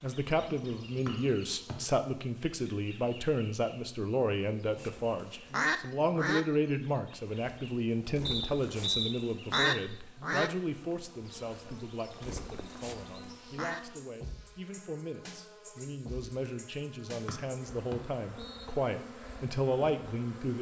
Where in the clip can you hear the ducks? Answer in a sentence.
The ducks can be heard from 4.8 to 6.5 s and from 7.2 to 13.8 s.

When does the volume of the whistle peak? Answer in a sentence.
The loudest moment of the whistle is at 9 seconds.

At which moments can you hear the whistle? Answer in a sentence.
The whistle can be heard from 1.1 to 1.8 s, from 8.2 to 9.8 s and from 17.2 to 18.6 s.